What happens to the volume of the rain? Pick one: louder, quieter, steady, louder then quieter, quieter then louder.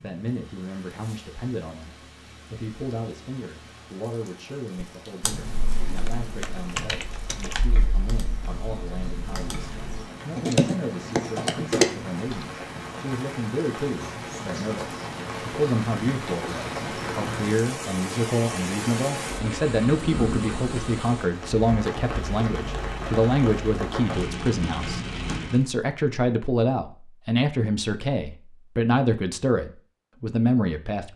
louder.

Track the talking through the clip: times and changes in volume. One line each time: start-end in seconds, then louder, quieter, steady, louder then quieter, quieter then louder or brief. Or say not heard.
0.0-31.1 louder.